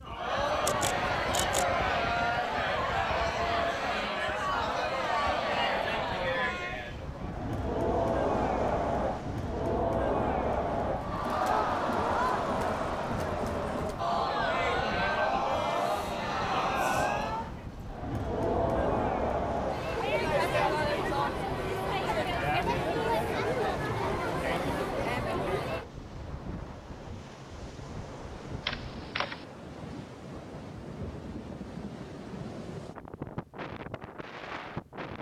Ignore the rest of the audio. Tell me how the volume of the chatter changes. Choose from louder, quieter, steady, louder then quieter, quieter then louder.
steady.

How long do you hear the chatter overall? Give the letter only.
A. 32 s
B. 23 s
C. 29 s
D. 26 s
D.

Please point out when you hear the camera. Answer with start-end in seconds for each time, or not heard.
0.7-1.8, 28.6-29.4.